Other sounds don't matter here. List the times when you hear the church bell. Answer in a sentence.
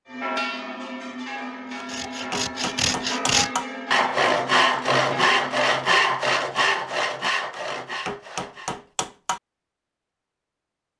You can hear the church bell from 0.1 to 5.8 s.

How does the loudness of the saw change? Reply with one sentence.
The volume of the saw goes up, then down.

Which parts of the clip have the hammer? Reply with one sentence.
You can hear the hammer from 2.0 to 3.6 s and from 7.5 to 9.4 s.